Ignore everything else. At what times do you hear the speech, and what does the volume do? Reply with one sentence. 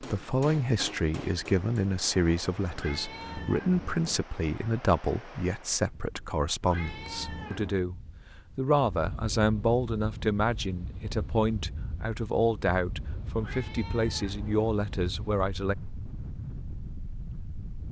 The speech can be heard from 0.0 to 15.8 s, at a steady volume.